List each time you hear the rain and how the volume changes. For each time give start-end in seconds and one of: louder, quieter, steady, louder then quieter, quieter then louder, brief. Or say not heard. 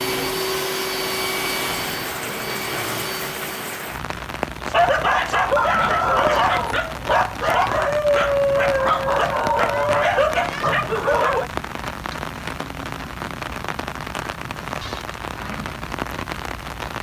0.0-16.9 steady.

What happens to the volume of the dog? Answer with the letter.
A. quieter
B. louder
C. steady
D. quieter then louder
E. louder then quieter
C.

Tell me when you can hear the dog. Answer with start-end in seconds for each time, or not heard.
4.6-11.5.